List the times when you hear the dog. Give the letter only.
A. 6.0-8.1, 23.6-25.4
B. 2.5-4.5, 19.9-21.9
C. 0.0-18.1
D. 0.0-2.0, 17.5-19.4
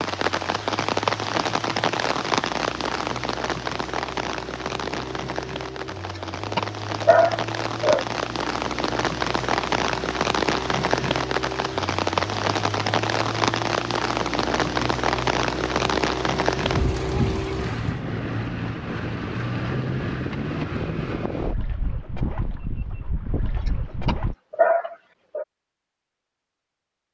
A.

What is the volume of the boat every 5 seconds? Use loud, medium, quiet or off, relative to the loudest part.
medium, medium, loud, loud, loud, off.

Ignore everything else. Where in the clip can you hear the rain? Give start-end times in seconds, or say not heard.
0.0-18.1.